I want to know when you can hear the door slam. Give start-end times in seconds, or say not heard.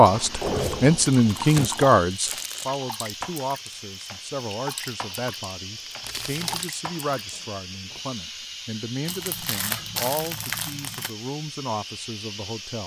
0.4-1.7.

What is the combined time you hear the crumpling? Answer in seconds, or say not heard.
5 s.